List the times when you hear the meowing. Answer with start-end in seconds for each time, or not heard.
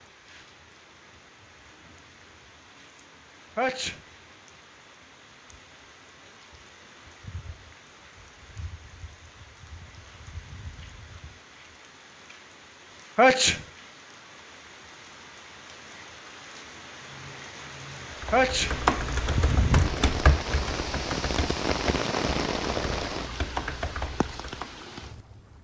not heard.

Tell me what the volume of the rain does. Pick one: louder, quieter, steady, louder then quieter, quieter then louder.
louder.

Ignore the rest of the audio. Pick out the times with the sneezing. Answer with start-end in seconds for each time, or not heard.
3.5-4.0, 13.2-13.6, 18.3-18.8.